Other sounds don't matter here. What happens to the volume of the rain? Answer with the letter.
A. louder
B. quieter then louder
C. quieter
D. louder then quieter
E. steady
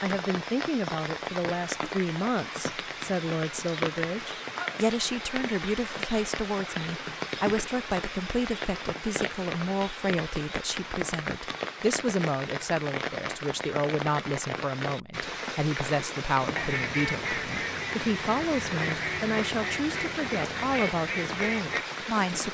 E.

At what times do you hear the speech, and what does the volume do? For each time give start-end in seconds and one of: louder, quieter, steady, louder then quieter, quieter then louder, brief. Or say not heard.
0.0-22.4 steady.